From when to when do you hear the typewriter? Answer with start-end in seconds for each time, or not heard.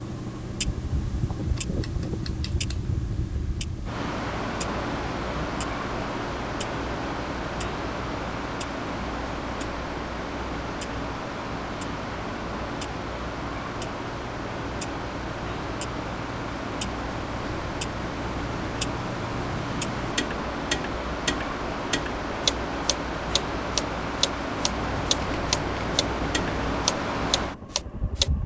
not heard.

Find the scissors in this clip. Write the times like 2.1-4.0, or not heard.
24.9-26.8.